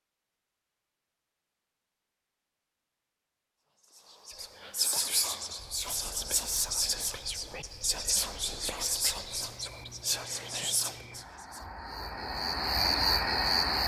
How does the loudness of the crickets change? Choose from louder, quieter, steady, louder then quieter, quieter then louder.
louder.